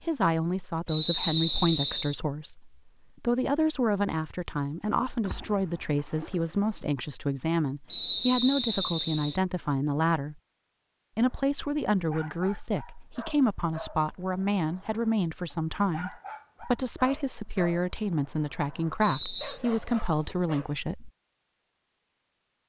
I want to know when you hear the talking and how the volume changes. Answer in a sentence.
The talking can be heard from 0.0 to 10.3 s, at a steady volume; and from 11.2 to 21.1 s, at a steady volume.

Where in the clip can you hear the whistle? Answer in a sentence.
The whistle can be heard from 0.8 to 2.1 s, from 7.9 to 9.4 s and from 19.0 to 19.6 s.